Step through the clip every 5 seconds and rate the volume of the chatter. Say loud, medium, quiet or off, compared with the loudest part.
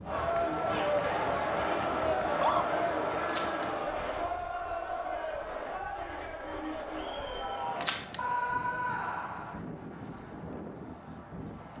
loud, medium, off.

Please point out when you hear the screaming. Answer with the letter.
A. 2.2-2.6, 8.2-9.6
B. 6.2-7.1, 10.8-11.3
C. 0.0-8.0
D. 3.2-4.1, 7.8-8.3
A.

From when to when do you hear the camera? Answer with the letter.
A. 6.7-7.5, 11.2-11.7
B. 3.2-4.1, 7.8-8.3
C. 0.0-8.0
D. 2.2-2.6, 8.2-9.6
B.